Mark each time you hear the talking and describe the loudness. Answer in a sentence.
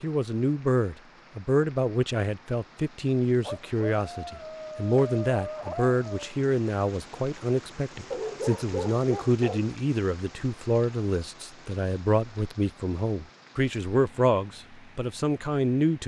The talking can be heard from 0.0 to 16.0 s, at a steady volume.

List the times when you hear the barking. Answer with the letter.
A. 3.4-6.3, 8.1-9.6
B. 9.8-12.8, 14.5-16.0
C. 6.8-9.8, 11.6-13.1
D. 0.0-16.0
A.